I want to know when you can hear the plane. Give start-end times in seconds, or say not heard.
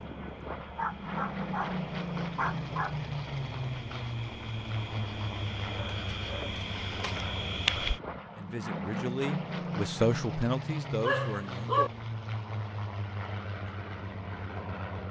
0.0-15.0.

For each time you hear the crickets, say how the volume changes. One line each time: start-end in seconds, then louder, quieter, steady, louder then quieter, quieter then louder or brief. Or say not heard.
0.0-8.0 louder.